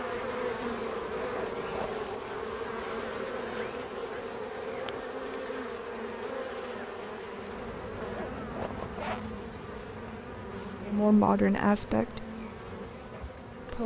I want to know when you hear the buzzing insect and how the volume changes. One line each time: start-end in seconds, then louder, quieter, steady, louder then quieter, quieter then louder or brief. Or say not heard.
0.0-13.8 quieter.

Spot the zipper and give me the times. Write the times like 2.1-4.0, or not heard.
1.1-2.0, 8.0-9.3.